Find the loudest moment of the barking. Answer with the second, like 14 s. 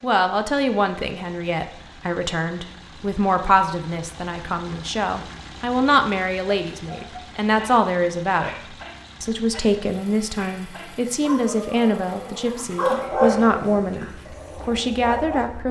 13 s.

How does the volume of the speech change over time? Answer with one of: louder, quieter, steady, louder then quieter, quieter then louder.
steady.